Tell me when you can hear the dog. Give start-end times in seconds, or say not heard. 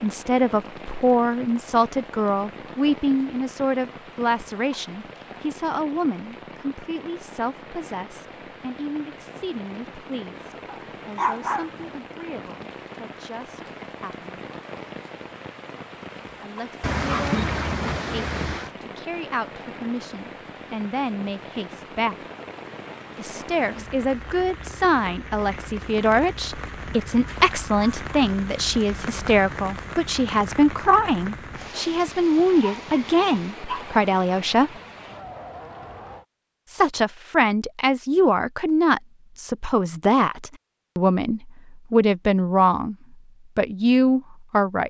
10.7-11.7, 16.8-18.8, 32.0-34.0.